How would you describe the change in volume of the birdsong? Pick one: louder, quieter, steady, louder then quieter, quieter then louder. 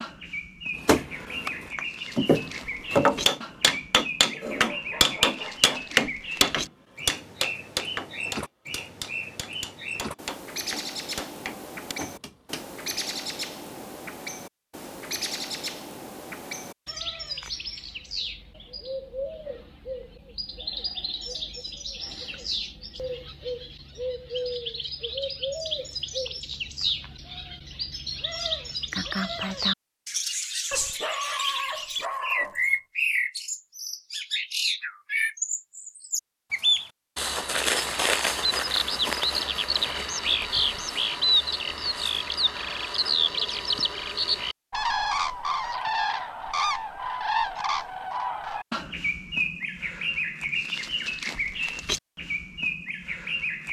louder.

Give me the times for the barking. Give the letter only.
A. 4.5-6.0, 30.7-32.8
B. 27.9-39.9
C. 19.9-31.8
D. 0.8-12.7
A.